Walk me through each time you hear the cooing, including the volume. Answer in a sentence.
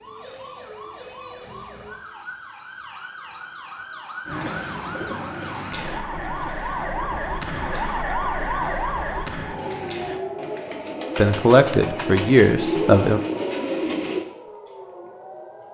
The cooing can be heard from 4.2 to 14.2 s, getting quieter then louder.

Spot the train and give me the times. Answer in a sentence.
The train can't be heard in this clip.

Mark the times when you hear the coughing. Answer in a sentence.
You can't hear the coughing here.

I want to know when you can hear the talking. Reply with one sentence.
The talking can be heard from 11.2 to 13.2 s.